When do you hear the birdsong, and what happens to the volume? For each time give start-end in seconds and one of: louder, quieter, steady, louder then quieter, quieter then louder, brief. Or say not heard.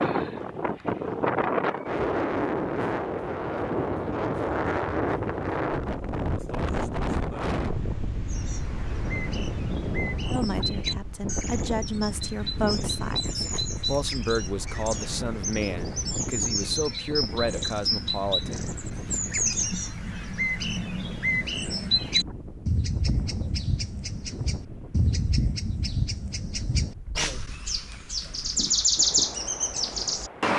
8.2-30.5 louder.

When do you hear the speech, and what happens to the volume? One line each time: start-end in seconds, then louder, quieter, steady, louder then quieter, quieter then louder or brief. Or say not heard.
10.3-19.2 steady.